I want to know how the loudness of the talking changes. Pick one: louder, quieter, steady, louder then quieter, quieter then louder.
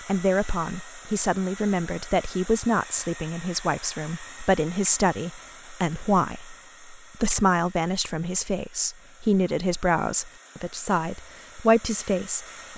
steady.